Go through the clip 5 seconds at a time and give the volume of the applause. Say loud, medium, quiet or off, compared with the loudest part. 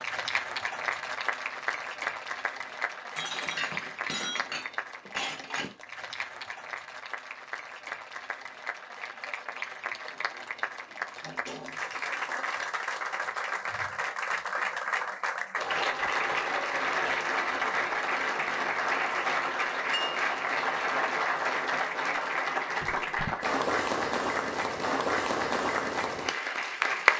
medium, quiet, medium, loud, loud, loud.